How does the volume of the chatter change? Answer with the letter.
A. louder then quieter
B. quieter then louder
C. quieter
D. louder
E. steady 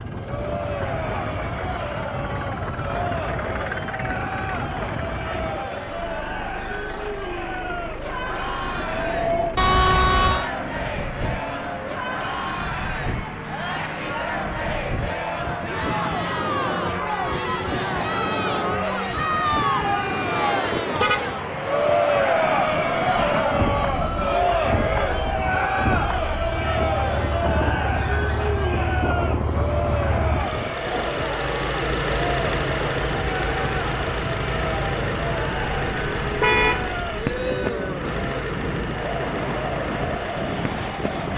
A.